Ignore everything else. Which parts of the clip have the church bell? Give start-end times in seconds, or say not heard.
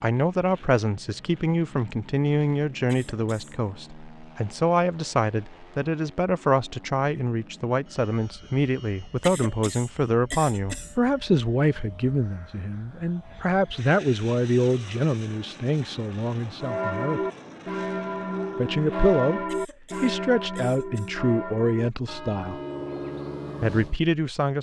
16.6-24.0.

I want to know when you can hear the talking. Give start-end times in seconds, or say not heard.
0.0-17.2, 18.6-22.6, 23.6-24.5.